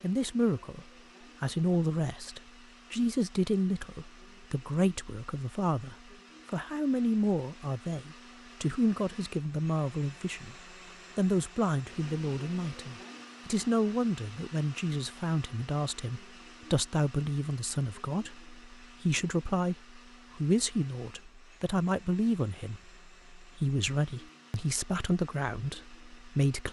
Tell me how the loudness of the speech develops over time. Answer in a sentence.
The volume of the speech stays about the same.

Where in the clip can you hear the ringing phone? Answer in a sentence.
The ringing phone can't be heard in this clip.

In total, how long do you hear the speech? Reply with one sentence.
The speech can be heard for 26 seconds in total.